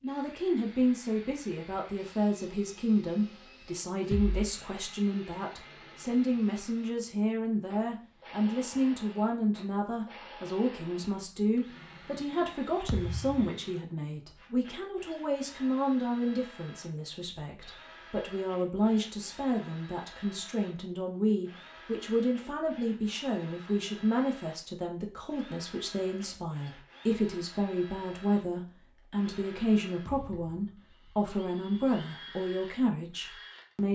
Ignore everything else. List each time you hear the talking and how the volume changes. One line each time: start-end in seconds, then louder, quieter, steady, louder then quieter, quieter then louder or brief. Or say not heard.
0.0-33.9 steady.